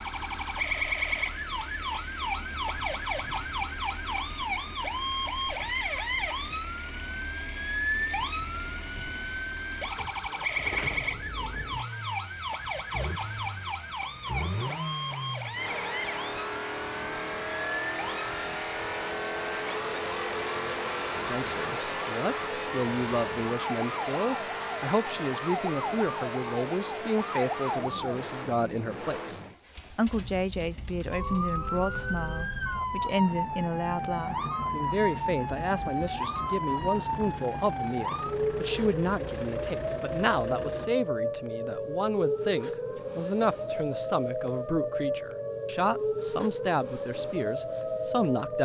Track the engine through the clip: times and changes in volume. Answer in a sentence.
The engine can be heard from 0.0 to 40.9 s, getting louder then quieter.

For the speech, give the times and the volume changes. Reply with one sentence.
The speech can be heard from 21.3 to 48.5 s, at a steady volume.